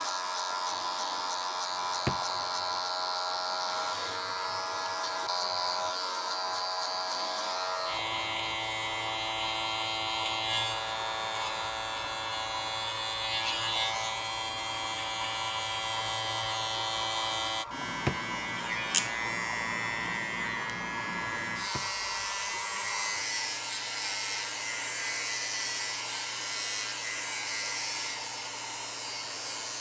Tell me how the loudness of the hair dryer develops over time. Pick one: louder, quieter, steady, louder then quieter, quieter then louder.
steady.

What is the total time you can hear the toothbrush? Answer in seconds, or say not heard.
not heard.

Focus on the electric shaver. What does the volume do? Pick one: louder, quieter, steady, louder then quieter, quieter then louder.
steady.